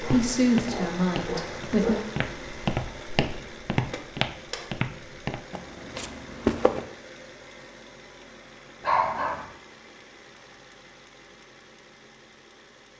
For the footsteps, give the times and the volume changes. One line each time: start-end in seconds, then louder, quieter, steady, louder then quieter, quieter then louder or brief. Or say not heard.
0.0-6.8 louder then quieter.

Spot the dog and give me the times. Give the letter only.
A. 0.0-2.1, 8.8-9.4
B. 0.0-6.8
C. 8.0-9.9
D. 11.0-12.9
A.